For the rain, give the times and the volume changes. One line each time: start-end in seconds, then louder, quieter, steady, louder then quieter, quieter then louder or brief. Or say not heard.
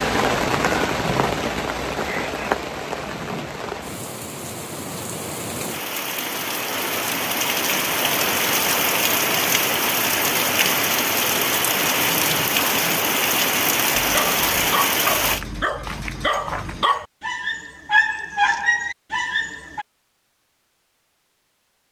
0.0-15.4 quieter then louder.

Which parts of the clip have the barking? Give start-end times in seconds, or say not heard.
13.9-19.9.